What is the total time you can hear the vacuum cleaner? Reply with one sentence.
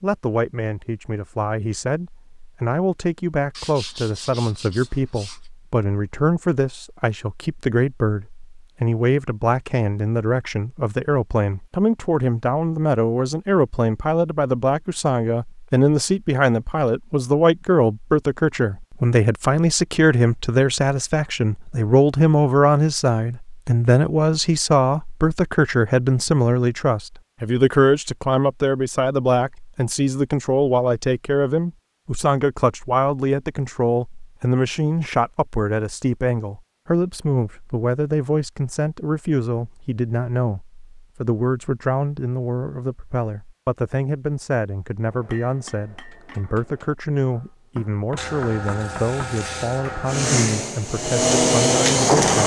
You can hear the vacuum cleaner for 2 seconds altogether.